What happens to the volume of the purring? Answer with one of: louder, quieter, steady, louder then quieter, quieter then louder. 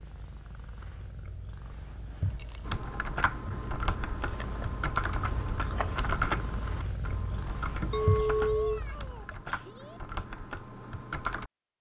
louder.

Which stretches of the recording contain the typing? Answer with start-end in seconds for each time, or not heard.
2.6-11.5.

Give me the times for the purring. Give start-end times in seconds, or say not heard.
0.0-9.3.